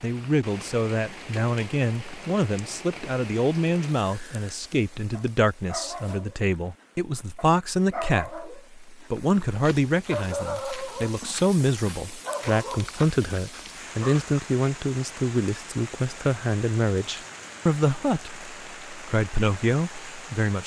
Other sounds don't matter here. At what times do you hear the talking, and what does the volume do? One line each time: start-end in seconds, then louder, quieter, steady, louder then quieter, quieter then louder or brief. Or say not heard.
0.0-20.6 steady.